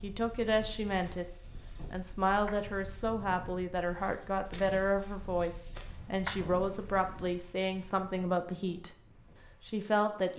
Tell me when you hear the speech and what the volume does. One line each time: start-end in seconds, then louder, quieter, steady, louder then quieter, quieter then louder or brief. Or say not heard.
0.0-1.2 brief
1.9-8.9 steady
9.7-10.3 brief.